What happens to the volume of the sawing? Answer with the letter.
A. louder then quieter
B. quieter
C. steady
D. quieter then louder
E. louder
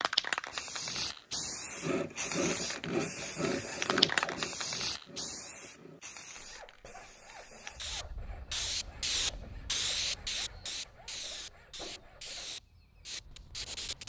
B.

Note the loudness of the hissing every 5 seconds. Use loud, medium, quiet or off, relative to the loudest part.
loud, medium, medium.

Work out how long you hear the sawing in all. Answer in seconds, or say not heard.
11 s.